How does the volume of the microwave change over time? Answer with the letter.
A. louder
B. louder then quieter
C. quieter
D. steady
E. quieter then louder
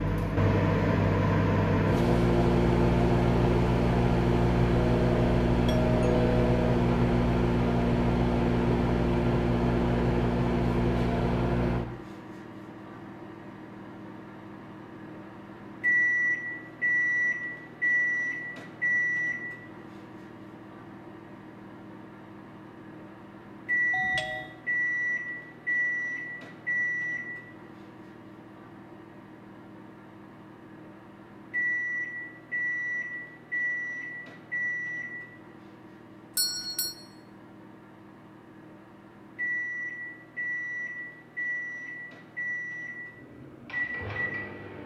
C.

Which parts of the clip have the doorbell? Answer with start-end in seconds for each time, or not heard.
4.8-6.8, 23.9-24.5, 36.4-37.0.